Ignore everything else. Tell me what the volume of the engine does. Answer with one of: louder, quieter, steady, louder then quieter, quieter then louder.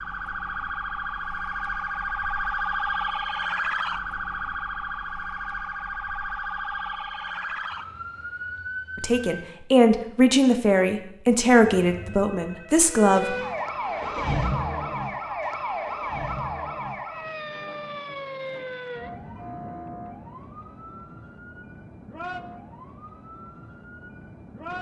louder then quieter.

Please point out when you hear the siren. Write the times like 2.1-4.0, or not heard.
0.0-9.6, 12.8-24.7.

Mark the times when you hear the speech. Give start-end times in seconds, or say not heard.
8.9-13.3.